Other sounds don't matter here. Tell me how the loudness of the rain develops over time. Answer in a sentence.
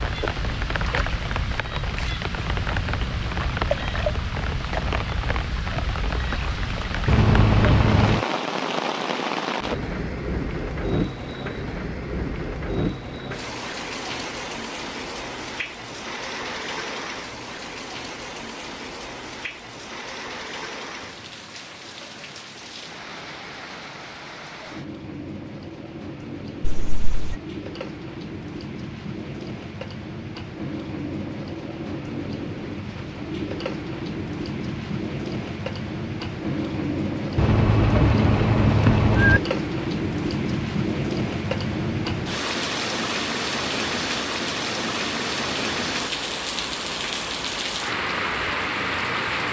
The loudness of the rain goes down, then up.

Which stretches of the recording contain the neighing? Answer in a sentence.
You can hear the neighing from 7.0 to 8.2 s, from 26.6 to 27.4 s and from 37.4 to 39.4 s.